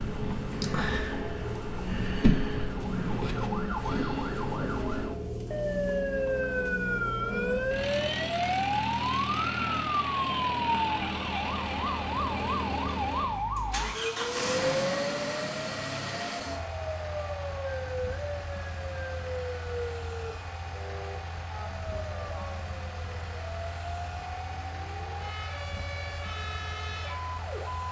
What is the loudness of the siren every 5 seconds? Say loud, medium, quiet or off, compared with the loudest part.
loud, loud, loud, medium, quiet, medium.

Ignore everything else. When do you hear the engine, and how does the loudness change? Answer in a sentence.
The engine can be heard from 0.0 to 27.8 s, getting quieter.